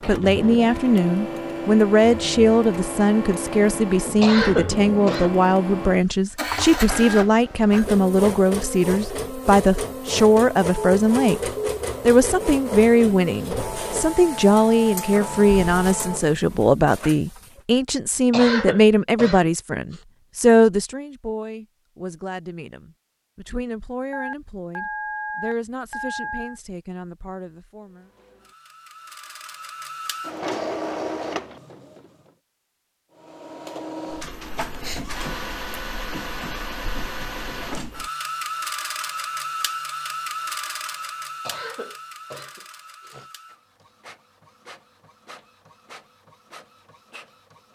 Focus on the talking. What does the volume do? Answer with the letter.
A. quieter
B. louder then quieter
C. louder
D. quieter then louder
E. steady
A.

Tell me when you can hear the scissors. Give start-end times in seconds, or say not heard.
not heard.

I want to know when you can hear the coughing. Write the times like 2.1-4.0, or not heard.
4.2-5.4, 18.3-20.0, 41.4-43.3.